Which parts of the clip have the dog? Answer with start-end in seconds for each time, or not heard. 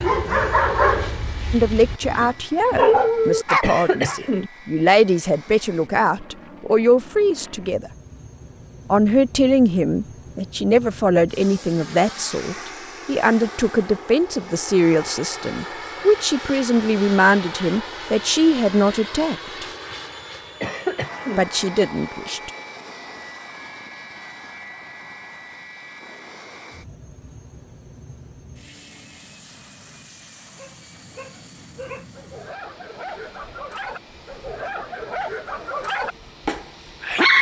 0.0-4.2, 30.6-37.3.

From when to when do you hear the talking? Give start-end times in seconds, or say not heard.
1.5-7.9, 8.9-19.6, 21.4-22.5.